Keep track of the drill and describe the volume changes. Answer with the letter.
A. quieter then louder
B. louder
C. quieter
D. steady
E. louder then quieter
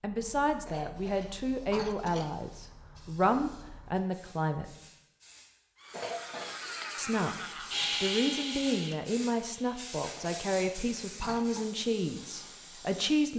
E.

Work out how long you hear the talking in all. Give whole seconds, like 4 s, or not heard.
11 s.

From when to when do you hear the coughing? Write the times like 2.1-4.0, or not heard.
0.7-2.4, 5.9-6.6, 10.2-11.7.